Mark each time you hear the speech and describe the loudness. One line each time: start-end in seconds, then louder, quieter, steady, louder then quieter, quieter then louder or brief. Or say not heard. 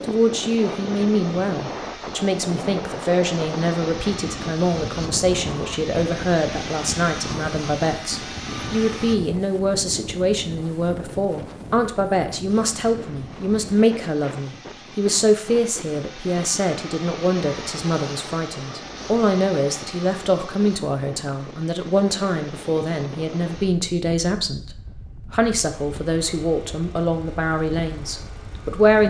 0.0-29.0 steady.